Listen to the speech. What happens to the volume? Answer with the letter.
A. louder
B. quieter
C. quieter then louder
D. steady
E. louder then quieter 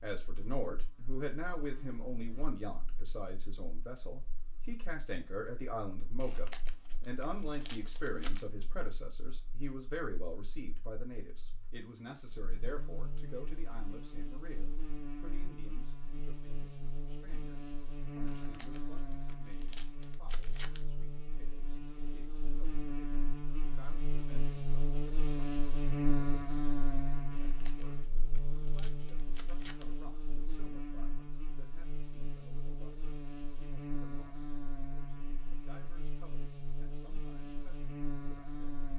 B.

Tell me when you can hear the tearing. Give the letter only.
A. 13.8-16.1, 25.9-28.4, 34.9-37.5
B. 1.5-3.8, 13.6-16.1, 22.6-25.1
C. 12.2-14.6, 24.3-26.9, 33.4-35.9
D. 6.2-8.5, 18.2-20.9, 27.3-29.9
D.